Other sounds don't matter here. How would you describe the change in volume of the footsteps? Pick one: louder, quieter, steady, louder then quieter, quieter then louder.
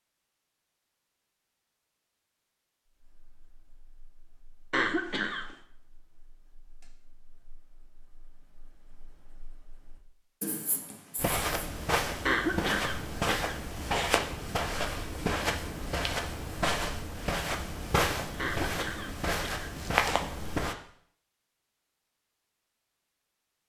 steady.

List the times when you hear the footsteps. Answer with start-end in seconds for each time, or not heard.
11.2-20.8.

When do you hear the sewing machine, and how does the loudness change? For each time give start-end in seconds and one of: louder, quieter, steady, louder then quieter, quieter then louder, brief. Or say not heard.
not heard.